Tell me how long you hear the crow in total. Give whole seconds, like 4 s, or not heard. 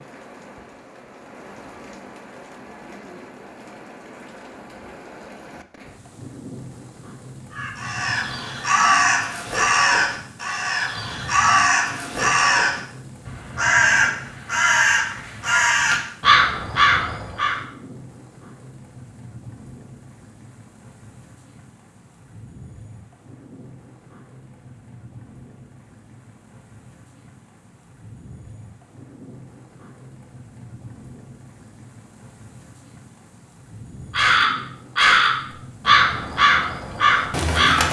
14 s.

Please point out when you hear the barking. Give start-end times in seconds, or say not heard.
not heard.